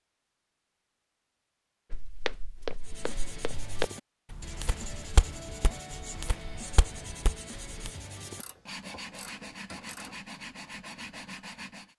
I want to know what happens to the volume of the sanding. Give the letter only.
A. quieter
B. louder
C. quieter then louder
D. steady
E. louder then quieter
D.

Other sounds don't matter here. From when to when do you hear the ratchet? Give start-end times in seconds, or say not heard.
8.3-10.2.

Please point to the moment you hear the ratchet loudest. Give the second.
10 s.